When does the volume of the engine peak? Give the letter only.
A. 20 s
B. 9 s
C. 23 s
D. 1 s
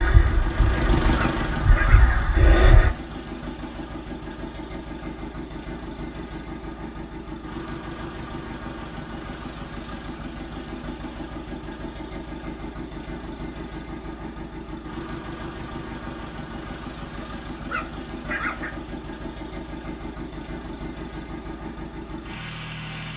D.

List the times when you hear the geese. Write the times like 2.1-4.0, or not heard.
0.0-2.9.